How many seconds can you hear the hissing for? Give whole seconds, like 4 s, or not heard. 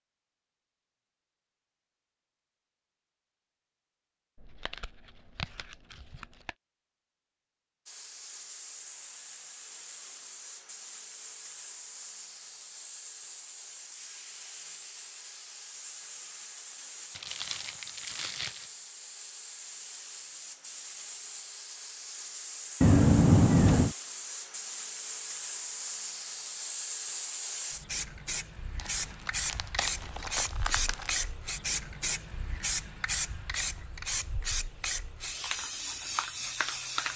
29 s.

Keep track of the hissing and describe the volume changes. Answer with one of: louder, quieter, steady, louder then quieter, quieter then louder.
louder.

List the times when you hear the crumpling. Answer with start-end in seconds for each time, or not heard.
4.3-6.5, 17.1-18.7, 28.8-31.3.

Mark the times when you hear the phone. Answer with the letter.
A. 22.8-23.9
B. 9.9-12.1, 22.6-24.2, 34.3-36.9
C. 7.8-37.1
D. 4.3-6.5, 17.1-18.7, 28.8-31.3
A.